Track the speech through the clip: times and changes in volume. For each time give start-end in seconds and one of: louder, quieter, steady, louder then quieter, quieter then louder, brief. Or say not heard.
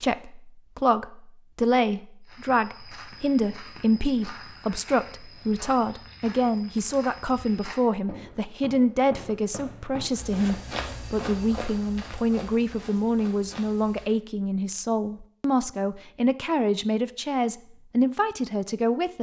0.0-19.1 steady.